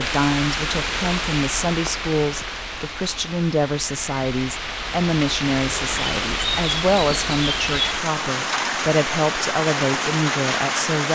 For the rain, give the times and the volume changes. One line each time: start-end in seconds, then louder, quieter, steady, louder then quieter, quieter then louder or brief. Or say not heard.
0.0-11.1 quieter then louder.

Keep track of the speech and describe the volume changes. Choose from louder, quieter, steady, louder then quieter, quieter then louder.
steady.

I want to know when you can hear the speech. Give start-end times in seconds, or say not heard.
0.0-11.1.